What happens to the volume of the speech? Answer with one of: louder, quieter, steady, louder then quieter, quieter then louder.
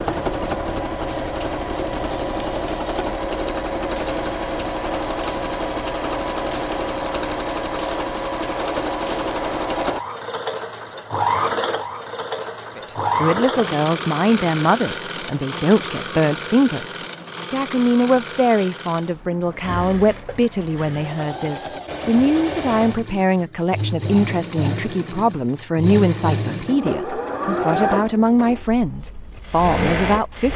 steady.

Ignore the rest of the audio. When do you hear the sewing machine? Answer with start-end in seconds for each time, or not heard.
0.0-30.5.